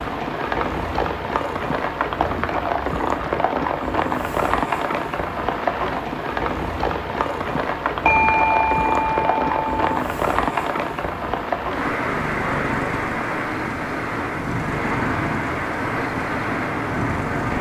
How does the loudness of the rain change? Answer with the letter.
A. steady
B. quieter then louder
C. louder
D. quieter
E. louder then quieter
A.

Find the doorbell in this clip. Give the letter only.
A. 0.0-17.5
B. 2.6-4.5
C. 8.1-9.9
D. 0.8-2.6
C.